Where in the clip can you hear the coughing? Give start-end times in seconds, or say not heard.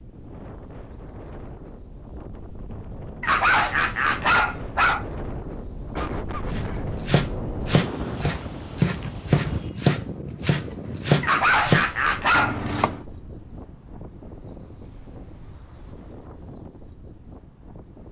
6.0-6.9.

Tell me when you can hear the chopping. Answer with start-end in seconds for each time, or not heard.
6.5-13.0.